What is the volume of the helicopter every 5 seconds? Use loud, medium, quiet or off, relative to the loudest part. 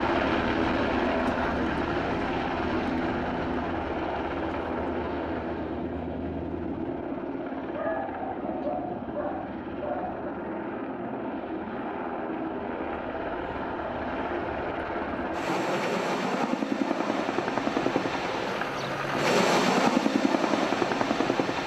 loud, medium, medium, loud, loud.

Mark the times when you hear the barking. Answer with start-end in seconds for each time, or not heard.
7.7-10.2.